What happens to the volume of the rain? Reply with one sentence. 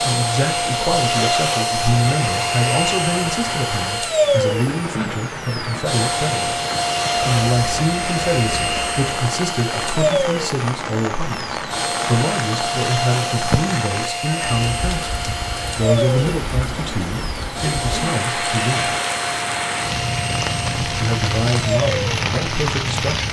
The volume of the rain goes up.